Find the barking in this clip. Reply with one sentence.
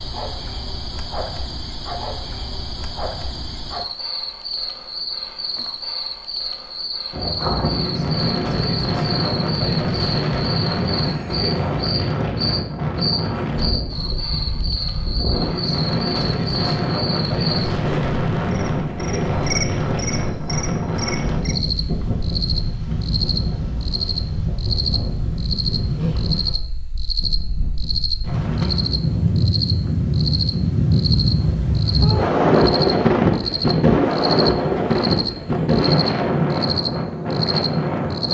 The barking can't be heard in this clip.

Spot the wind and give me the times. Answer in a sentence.
You can hear the wind from 7.1 to 38.2 s.